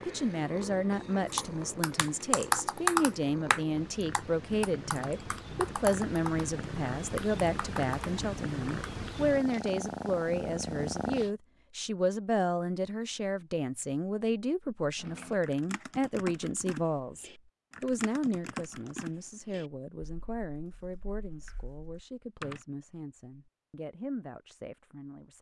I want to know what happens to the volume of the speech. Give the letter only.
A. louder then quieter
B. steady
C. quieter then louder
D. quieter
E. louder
D.